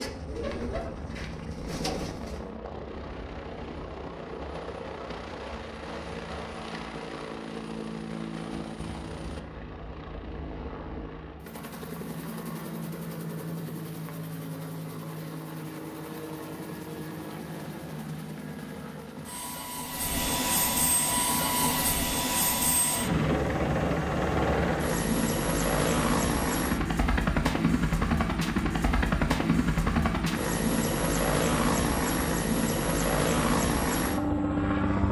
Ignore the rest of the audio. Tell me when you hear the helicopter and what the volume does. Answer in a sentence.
You can hear the helicopter from 0.0 to 35.0 s, getting louder.